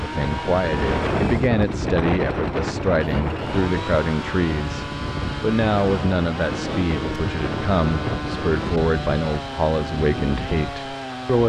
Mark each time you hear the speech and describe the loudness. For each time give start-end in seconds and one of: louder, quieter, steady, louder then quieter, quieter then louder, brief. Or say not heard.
0.0-11.4 steady.